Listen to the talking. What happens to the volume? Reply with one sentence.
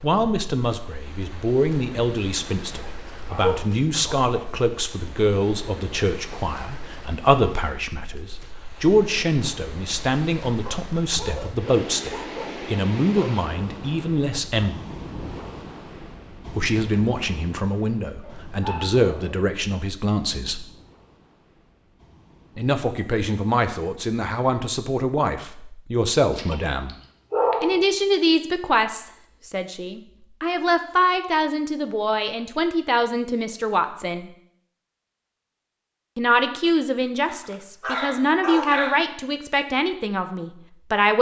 The loudness of the talking stays about the same.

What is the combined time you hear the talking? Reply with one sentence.
The talking can be heard for 35 seconds in total.